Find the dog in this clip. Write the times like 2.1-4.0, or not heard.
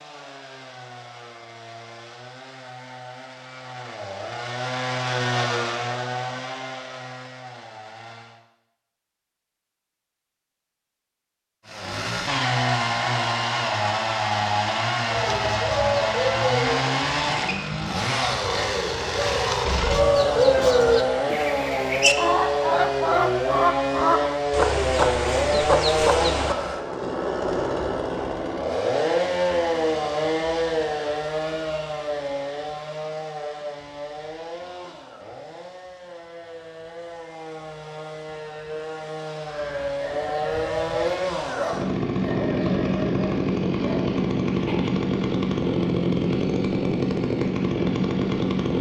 39.5-45.0.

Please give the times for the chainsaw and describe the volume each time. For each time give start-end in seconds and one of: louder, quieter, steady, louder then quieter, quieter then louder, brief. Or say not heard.
0.0-8.4 louder then quieter
11.7-48.7 quieter then louder.